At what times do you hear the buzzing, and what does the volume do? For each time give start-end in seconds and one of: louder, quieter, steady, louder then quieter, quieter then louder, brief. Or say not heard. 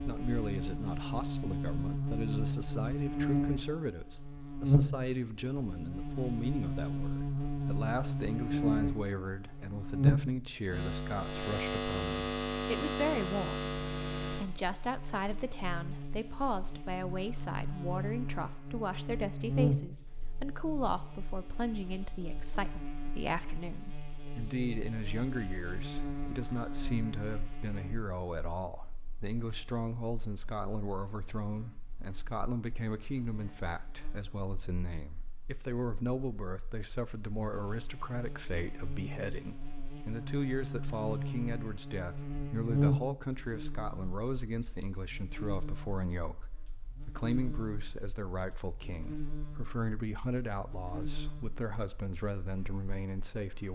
0.0-53.7 quieter then louder.